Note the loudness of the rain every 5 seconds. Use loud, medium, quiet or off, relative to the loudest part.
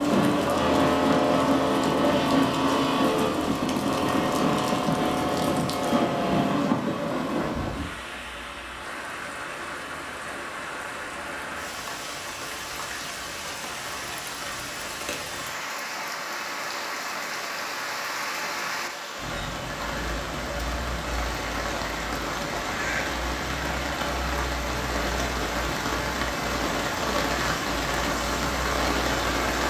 quiet, medium, medium, medium, loud, loud.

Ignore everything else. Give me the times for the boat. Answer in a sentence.
You can hear the boat from 0.0 to 8.0 s.